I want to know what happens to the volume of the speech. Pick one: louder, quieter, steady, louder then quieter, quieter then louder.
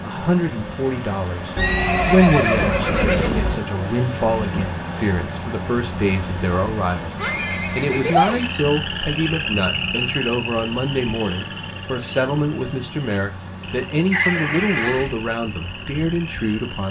steady.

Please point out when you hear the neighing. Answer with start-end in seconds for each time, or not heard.
1.6-3.6, 7.2-8.5, 14.1-15.1.